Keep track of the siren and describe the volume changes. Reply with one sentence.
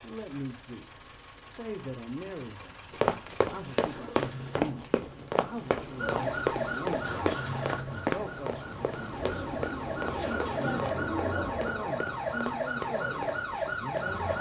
The volume of the siren goes down, then up.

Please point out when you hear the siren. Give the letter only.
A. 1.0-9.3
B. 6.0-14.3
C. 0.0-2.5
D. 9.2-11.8
B.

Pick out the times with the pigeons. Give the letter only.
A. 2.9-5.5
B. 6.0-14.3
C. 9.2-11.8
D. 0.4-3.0
C.